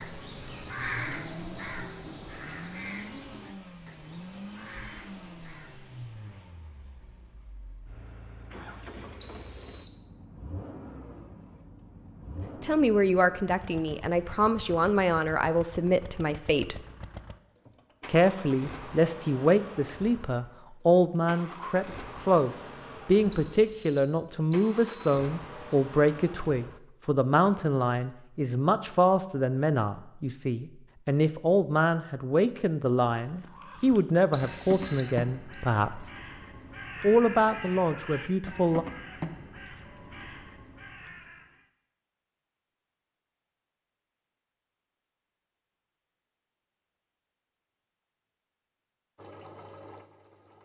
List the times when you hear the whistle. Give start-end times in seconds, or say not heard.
9.2-9.9, 23.3-25.9, 34.3-35.5.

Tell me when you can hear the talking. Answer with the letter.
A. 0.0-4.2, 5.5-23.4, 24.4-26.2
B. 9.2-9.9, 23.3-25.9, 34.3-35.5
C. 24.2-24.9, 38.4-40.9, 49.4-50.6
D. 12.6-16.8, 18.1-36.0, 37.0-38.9
D.